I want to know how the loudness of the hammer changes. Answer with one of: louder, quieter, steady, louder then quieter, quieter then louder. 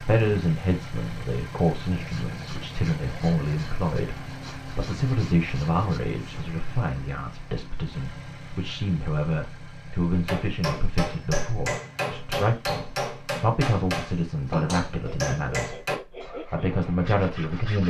steady.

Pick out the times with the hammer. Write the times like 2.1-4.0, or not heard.
10.1-16.0.